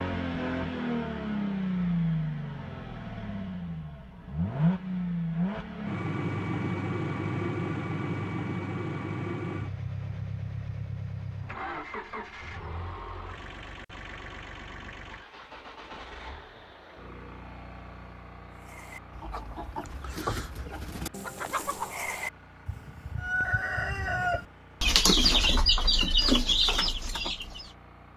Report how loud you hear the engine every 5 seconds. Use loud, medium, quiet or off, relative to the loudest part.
loud, loud, medium, quiet, quiet, quiet.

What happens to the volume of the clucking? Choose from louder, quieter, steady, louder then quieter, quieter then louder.
louder.